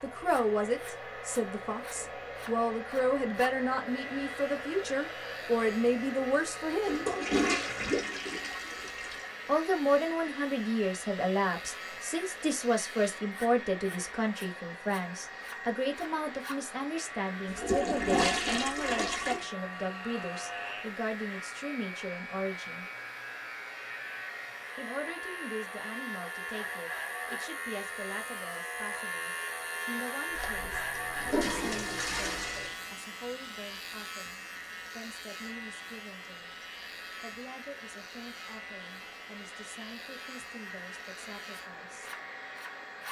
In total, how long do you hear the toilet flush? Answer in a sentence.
You can hear the toilet flush for 7 seconds altogether.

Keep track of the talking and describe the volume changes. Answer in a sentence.
The volume of the talking goes down.